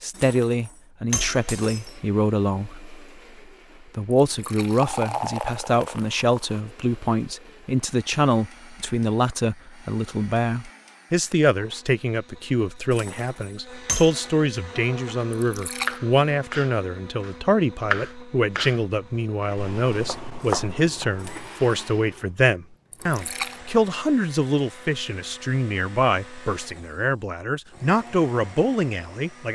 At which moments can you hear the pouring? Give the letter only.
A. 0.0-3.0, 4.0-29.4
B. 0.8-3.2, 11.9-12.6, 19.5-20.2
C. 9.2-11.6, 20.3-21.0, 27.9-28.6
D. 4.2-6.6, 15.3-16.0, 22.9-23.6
D.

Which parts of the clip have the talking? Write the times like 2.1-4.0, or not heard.
0.0-3.0, 4.0-29.4.